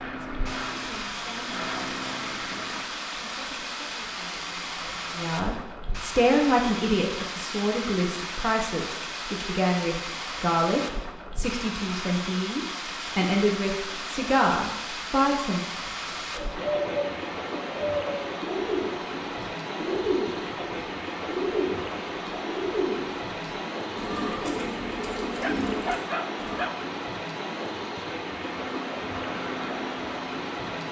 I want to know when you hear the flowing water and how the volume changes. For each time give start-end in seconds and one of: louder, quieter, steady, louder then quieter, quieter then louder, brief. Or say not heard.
0.0-30.8 steady.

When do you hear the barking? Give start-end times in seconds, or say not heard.
25.4-26.8.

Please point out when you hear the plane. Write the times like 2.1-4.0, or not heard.
0.0-2.9, 28.4-30.7.